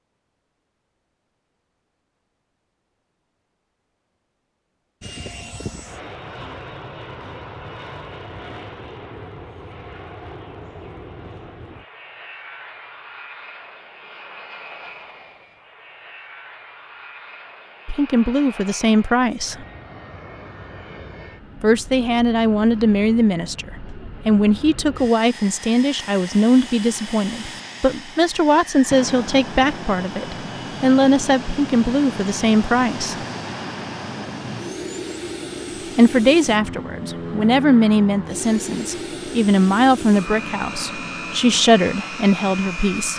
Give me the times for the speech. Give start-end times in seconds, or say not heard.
17.9-19.6, 21.6-33.2, 36.0-43.1.